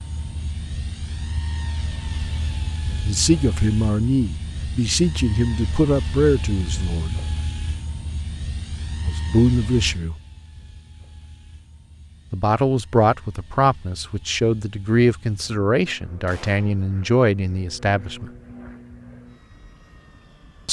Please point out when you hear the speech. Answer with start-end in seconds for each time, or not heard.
3.0-7.2, 9.1-10.2, 12.3-18.2.